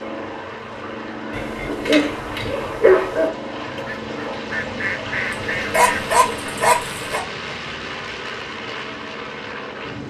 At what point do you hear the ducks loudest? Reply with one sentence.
The loudest moment of the ducks is at 5 seconds.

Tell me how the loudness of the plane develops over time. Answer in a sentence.
The volume of the plane stays about the same.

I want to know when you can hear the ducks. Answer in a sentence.
You can hear the ducks from 3.8 to 6.0 s.